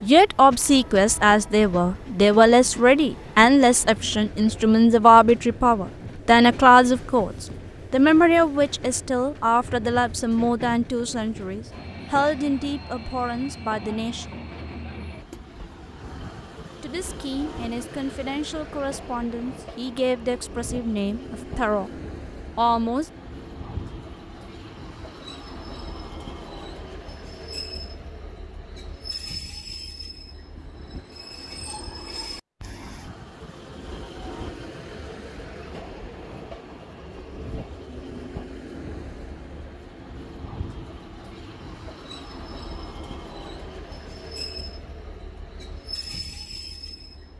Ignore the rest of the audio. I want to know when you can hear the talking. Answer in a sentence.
The talking can be heard from 0.0 to 14.3 s, from 16.8 to 21.9 s and from 22.6 to 23.1 s.